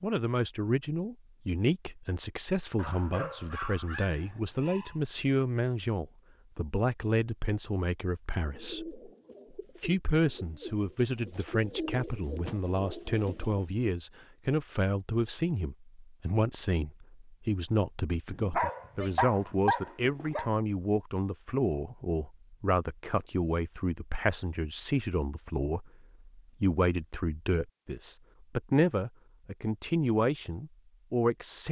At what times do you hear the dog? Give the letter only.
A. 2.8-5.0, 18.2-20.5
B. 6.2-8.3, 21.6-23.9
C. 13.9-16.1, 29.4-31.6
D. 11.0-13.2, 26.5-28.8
A.